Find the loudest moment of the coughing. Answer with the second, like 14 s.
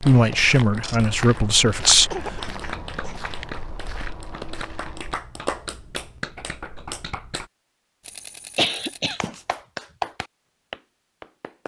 9 s.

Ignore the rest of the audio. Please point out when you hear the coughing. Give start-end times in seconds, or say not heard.
2.1-3.2, 8.6-9.3.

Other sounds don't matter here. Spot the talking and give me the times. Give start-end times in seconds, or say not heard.
0.0-2.4.